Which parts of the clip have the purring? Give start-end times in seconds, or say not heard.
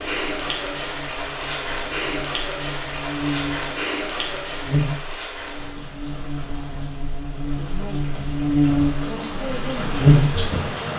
not heard.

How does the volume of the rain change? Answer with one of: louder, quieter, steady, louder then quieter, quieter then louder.
quieter then louder.